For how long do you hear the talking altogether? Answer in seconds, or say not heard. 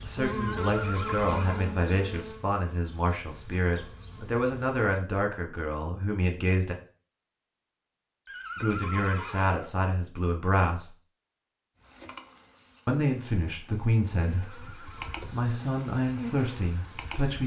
14 s.